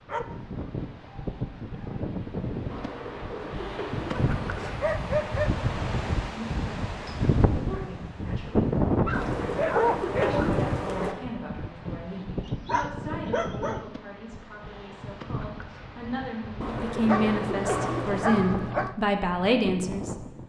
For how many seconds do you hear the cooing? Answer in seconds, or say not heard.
6 s.